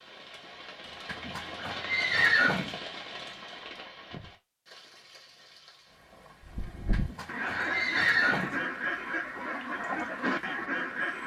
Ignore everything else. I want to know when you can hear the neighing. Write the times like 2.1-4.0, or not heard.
1.1-2.8, 6.9-8.6.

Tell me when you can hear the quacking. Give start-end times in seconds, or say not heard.
6.4-11.2.